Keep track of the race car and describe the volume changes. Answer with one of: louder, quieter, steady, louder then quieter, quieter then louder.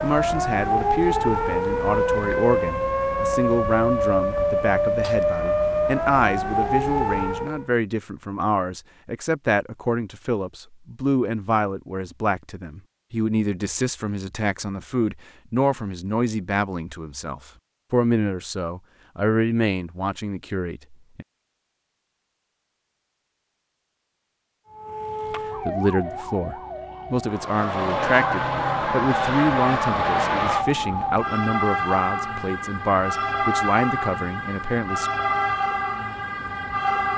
steady.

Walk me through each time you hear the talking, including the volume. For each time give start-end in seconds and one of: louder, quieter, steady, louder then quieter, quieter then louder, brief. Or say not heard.
0.0-21.2 steady
25.6-35.1 steady.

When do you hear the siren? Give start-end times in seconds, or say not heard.
0.0-7.7, 24.7-37.1.